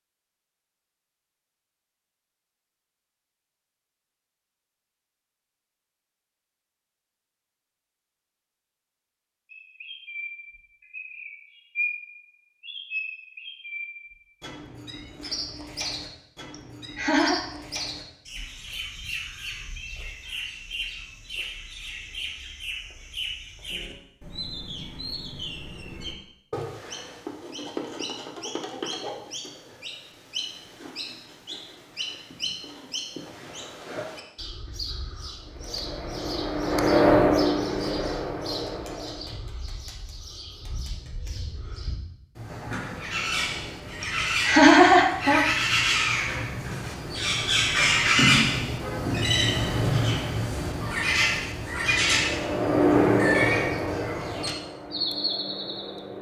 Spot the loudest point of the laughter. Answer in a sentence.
The volume of the laughter peaks at 45 seconds.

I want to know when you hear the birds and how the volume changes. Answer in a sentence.
You can hear the birds from 9.5 to 56.0 s, getting louder.